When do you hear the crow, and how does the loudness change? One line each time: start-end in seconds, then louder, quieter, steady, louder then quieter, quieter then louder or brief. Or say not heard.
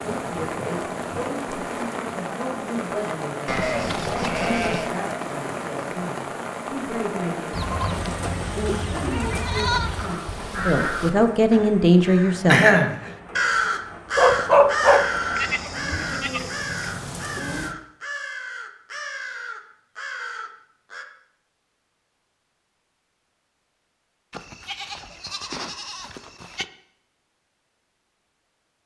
9.9-21.1 louder then quieter.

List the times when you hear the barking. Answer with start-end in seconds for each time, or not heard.
14.2-16.1.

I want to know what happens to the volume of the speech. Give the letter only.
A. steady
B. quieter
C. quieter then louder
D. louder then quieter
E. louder
E.